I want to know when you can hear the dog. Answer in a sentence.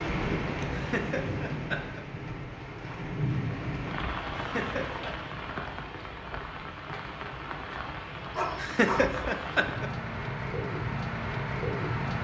The dog can be heard from 8.3 to 9.1 s.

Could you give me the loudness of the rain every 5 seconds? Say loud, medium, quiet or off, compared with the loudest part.
loud, medium, loud.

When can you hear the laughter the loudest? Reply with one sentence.
The volume of the laughter peaks at 9 seconds.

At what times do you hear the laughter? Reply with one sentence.
You can hear the laughter from 0.7 to 2.0 s, from 4.3 to 5.2 s and from 8.6 to 9.9 s.